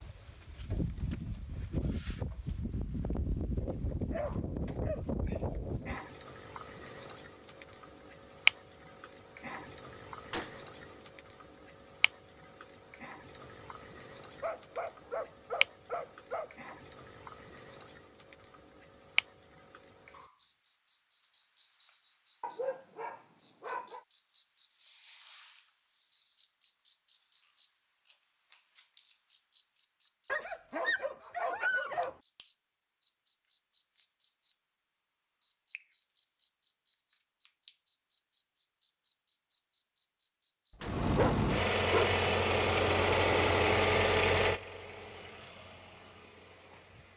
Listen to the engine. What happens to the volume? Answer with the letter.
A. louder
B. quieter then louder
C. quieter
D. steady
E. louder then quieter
C.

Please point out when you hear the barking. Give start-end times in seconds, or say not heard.
4.1-5.4, 14.4-16.8, 22.4-24.0, 30.2-32.1, 41.1-42.2.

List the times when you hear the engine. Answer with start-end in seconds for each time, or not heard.
40.8-47.1.